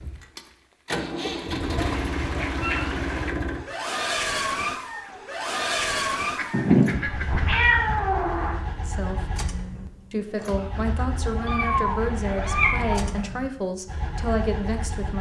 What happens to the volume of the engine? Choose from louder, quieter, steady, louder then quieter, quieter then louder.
quieter.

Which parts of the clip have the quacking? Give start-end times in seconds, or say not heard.
1.8-3.4, 6.3-8.0, 11.2-13.2.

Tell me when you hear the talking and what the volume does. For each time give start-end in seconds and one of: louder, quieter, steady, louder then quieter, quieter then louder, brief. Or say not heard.
8.8-9.2 brief
10.1-15.1 steady.